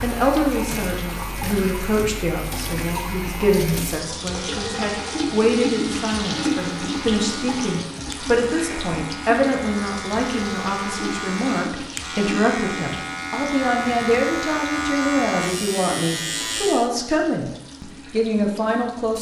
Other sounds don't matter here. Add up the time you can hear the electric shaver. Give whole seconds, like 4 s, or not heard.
17 s.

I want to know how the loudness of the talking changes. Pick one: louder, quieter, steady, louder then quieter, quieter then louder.
steady.